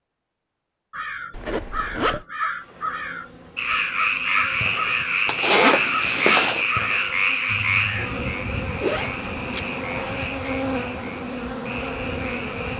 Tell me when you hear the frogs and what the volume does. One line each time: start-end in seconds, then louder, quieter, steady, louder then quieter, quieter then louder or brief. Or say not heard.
3.5-12.7 quieter.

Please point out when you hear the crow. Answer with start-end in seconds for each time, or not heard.
0.9-8.1.